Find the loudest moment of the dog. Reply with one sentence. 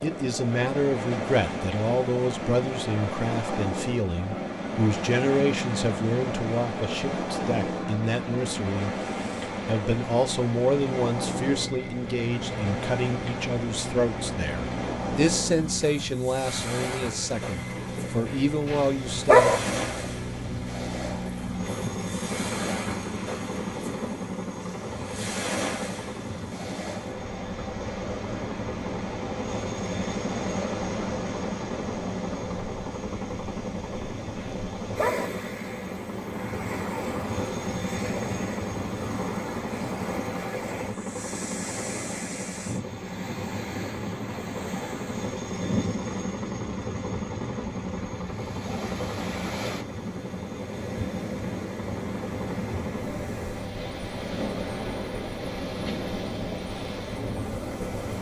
The loudest moment of the dog is at 19 seconds.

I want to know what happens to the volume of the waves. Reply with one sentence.
The volume of the waves stays about the same.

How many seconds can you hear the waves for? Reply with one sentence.
The waves can be heard for 58 seconds in total.